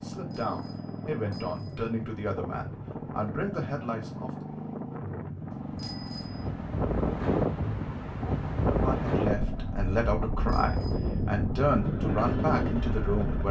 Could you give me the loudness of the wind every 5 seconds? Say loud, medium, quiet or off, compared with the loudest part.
quiet, loud, loud.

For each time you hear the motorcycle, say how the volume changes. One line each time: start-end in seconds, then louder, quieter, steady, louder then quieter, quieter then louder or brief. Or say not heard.
0.0-13.4 steady.